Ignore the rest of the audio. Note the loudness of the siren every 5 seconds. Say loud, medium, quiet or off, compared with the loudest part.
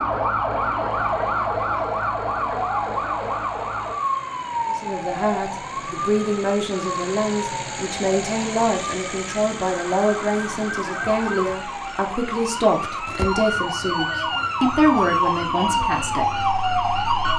loud, medium, medium, loud.